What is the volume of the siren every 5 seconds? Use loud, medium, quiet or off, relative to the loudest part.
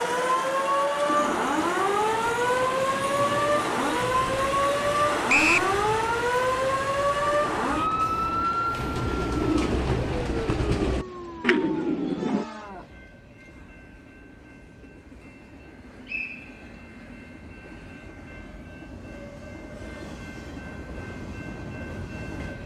loud, loud, quiet, off, off.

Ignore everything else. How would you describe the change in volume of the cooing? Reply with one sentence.
The volume of the cooing goes up.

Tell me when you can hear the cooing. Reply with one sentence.
You can hear the cooing from 1.1 to 12.4 s.